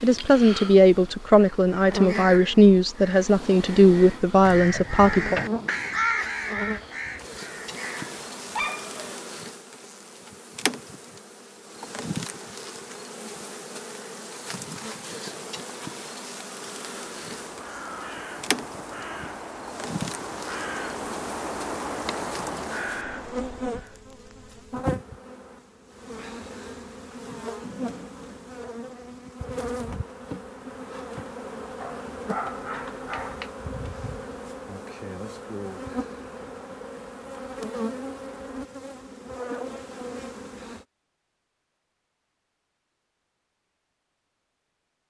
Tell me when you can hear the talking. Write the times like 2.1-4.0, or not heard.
0.0-5.4.